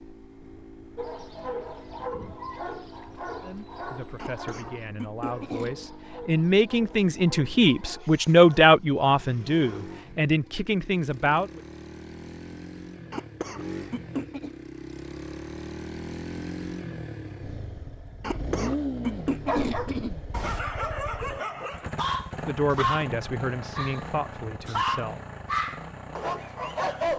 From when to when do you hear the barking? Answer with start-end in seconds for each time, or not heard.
0.9-10.7, 19.4-27.1.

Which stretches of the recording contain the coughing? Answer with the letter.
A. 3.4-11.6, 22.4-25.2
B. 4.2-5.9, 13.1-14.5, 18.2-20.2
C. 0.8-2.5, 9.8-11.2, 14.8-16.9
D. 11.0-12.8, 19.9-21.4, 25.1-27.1
B.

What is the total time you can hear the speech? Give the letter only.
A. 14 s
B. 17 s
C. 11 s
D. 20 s
C.